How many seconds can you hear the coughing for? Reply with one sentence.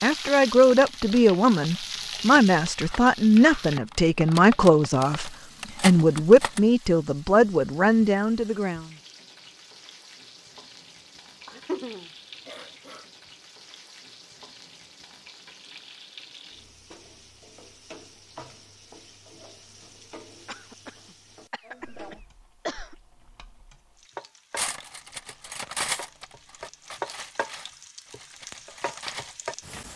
You can hear the coughing for 4 seconds altogether.